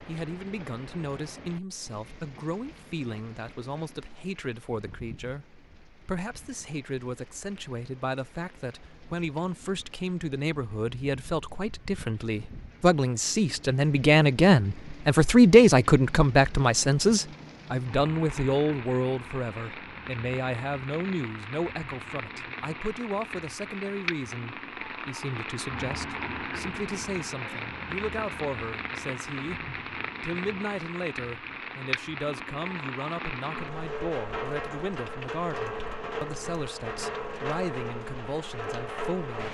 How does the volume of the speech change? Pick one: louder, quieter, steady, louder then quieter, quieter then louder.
louder then quieter.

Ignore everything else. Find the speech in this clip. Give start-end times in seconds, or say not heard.
0.1-39.4.